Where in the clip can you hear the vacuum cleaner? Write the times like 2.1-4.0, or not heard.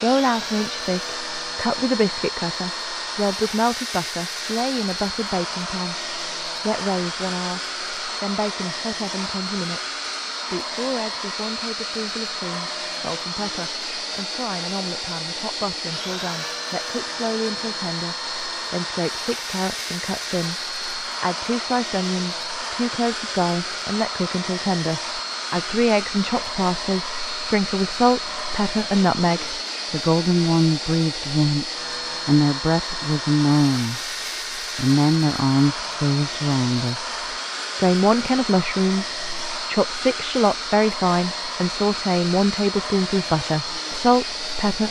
0.0-44.8.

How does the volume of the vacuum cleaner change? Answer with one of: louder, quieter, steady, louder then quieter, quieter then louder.
steady.